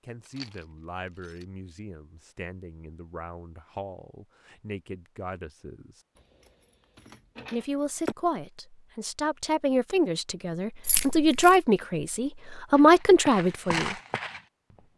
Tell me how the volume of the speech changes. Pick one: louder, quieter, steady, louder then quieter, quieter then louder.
louder.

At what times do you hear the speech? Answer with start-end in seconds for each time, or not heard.
0.0-6.0, 7.5-13.9.